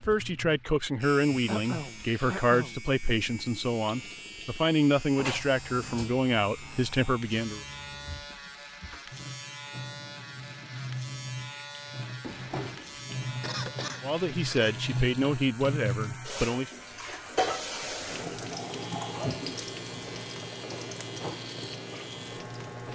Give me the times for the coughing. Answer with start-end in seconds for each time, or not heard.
1.4-2.9, 13.4-14.8.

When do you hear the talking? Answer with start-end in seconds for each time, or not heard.
0.0-7.7, 14.0-16.7.